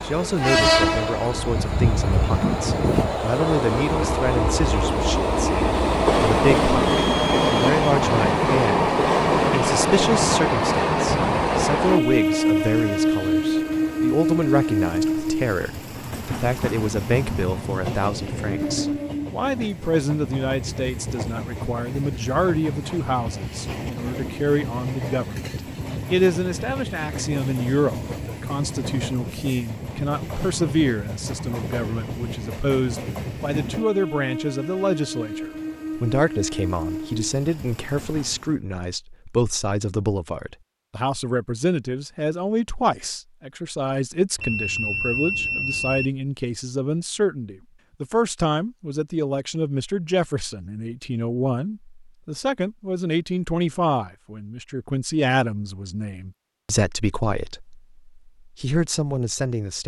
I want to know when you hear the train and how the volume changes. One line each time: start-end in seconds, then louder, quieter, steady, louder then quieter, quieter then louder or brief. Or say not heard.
0.0-38.5 quieter.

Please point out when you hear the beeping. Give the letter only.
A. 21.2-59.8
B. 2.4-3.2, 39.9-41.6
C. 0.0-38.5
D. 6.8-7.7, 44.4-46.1
D.